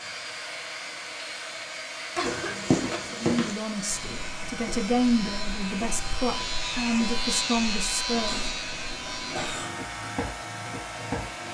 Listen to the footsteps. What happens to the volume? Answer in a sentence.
The loudness of the footsteps goes down, then up.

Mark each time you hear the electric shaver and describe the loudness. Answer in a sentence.
You can hear the electric shaver from 0.0 to 11.4 s, getting louder then quieter.